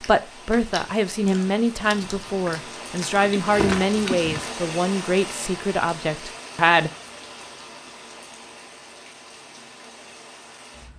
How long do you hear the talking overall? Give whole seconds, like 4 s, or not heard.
7 s.